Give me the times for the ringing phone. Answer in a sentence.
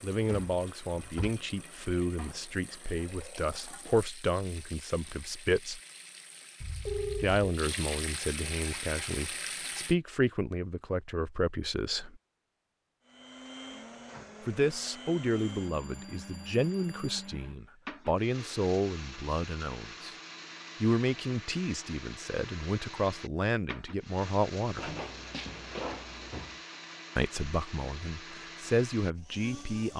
You can hear the ringing phone from 6.6 to 7.4 s and from 15.5 to 17.2 s.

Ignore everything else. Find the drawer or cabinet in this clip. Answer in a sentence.
The drawer or cabinet can be heard from 0.1 to 1.4 s and from 24.8 to 26.6 s.